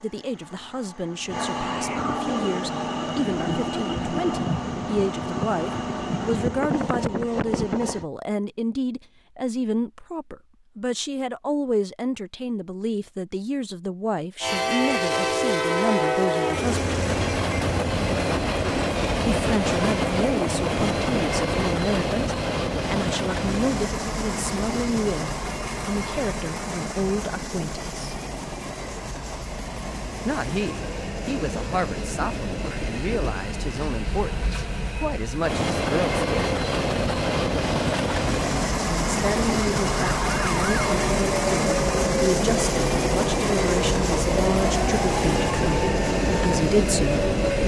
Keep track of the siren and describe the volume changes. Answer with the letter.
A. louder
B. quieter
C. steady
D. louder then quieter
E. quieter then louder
C.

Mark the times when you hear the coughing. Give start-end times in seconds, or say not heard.
not heard.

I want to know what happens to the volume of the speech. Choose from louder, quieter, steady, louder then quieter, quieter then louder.
steady.